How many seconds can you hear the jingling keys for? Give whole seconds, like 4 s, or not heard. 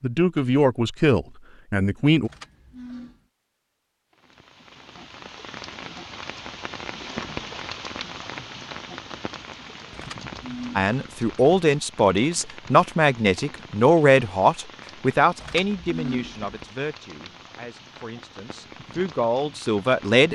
4 s.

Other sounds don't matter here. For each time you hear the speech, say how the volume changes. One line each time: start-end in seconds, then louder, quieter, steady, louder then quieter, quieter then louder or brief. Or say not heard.
0.0-2.3 brief
10.8-20.3 quieter then louder.